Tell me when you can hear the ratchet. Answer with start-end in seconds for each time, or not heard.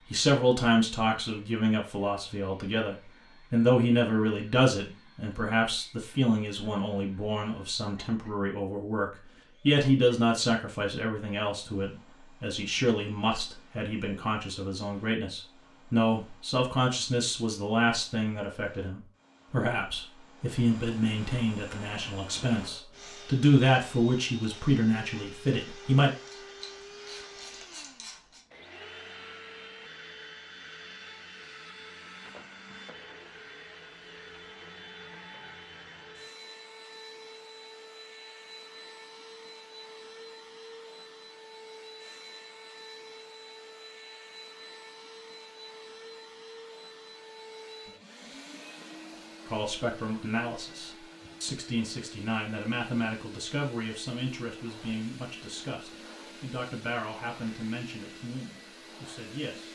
26.1-28.4.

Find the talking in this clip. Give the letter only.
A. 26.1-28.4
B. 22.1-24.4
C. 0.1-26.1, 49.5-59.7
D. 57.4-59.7
C.